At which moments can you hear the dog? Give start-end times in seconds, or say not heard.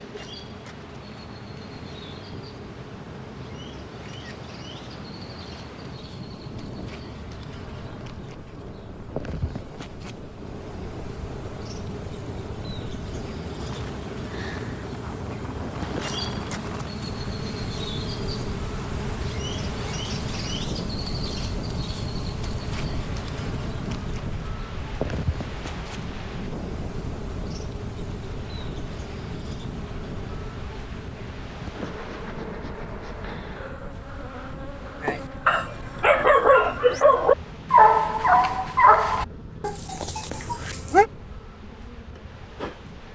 35.0-41.0.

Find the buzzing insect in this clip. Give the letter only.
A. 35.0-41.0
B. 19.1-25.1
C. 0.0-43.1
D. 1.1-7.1
C.